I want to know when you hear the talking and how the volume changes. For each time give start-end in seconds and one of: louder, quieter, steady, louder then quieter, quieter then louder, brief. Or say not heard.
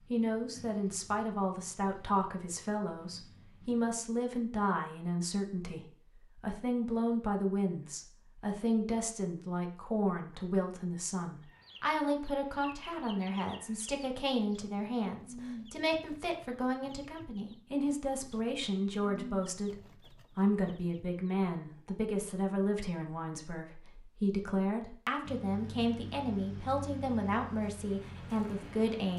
0.1-29.1 steady.